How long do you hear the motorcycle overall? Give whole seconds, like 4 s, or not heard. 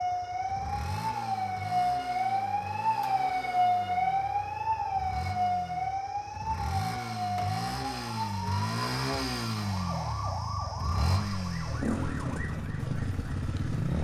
14 s.